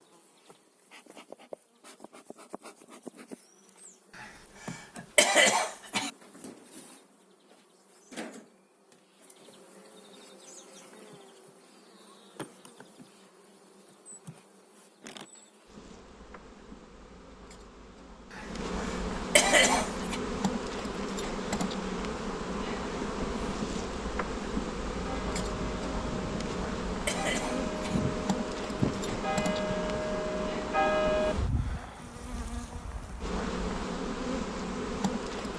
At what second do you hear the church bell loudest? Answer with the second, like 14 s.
31 s.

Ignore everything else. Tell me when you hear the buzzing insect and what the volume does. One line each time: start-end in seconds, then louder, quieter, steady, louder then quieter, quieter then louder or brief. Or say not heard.
0.0-35.5 louder.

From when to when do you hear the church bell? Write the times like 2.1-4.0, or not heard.
24.9-31.4.